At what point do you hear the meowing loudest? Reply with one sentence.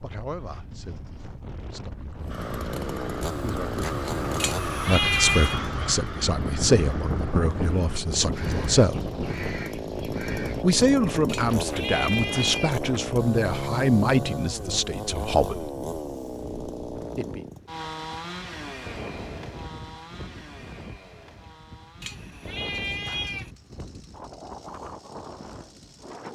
The loudest moment of the meowing is at 5 seconds.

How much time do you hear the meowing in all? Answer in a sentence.
The meowing can be heard for 4 seconds in total.